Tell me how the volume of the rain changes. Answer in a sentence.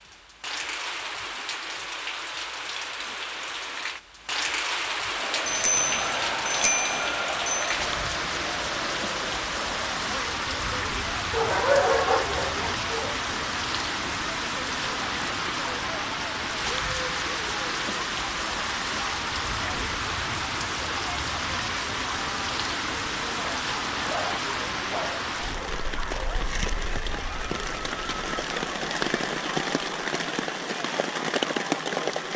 The volume of the rain stays about the same.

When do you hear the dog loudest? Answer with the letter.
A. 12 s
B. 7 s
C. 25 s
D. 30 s
A.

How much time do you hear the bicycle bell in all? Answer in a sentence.
You can hear the bicycle bell for 2 seconds altogether.